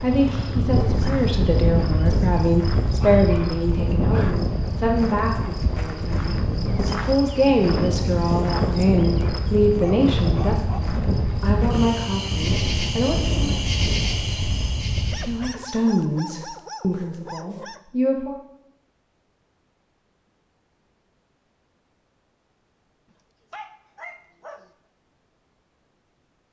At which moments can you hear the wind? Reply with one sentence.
The wind can be heard from 0.0 to 15.6 s.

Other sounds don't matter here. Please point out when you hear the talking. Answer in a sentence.
The talking can be heard from 0.0 to 13.6 s and from 15.2 to 18.4 s.